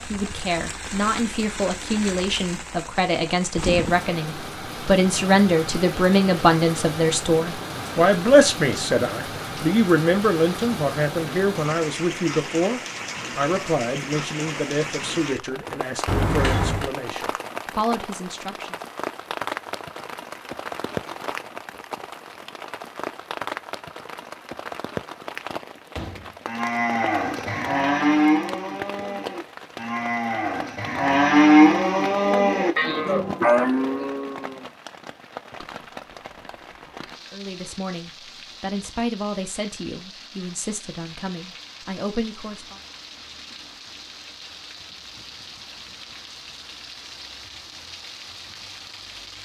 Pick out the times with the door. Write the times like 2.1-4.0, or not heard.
16.1-16.9, 25.9-26.4.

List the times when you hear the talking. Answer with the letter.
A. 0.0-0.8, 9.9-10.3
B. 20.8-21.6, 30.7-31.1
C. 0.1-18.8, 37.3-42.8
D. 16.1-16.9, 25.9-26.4
C.